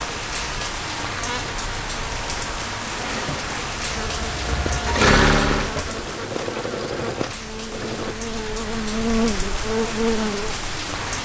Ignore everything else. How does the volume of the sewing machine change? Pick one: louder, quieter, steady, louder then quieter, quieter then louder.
louder then quieter.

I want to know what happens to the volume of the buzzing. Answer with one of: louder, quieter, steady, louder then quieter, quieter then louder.
louder.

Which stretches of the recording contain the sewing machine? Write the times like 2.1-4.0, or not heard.
3.0-8.2.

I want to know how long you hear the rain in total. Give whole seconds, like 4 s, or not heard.
11 s.